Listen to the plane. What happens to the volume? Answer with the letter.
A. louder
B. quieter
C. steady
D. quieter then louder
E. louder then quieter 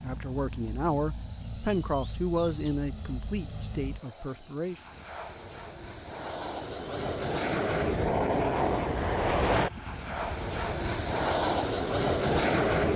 A.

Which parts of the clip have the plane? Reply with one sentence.
You can hear the plane from 0.0 to 12.9 s.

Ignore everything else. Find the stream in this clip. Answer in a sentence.
You can't hear the stream here.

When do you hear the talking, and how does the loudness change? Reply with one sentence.
The talking can be heard from 0.0 to 4.8 s, getting quieter.